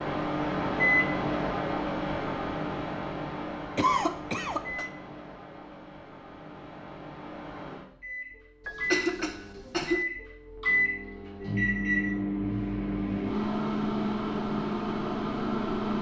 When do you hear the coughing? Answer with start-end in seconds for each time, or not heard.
3.8-4.8, 8.7-10.1.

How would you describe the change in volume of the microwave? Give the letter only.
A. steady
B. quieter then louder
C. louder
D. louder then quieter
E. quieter
B.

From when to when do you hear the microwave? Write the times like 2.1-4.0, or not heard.
0.0-15.9.